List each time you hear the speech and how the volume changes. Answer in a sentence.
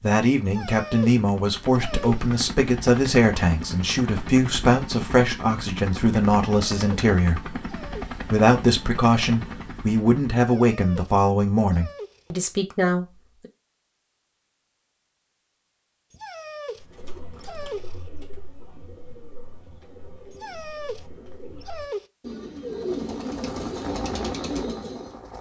You can hear the speech from 0.0 to 13.1 s, at a steady volume.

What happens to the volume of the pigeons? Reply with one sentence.
The loudness of the pigeons goes up.